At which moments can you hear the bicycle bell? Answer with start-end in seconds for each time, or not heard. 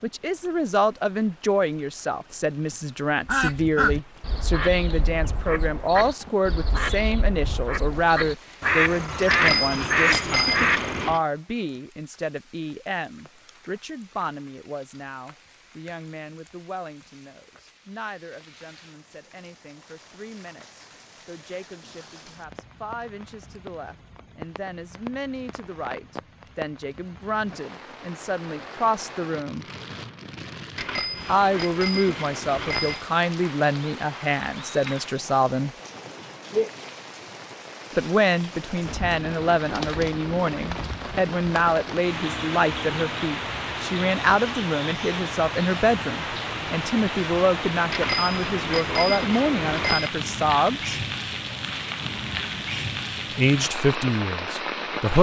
9.3-11.2, 30.8-33.0, 47.9-50.1.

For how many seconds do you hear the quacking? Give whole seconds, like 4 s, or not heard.
8 s.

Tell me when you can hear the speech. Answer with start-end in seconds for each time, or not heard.
0.0-29.6, 31.2-35.8, 37.9-51.0, 53.4-55.1.